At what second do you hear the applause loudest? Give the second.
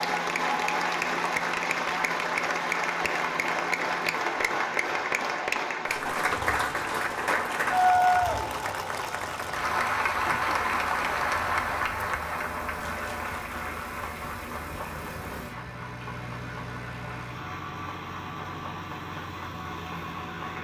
8 s.